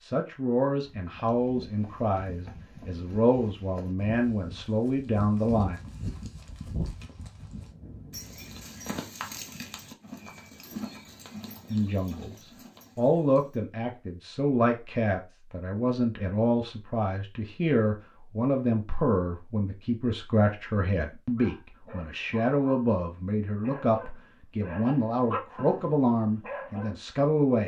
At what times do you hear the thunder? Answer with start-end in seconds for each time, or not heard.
7.3-8.9.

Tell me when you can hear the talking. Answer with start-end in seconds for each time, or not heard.
0.0-5.8, 11.7-12.3, 12.9-27.6.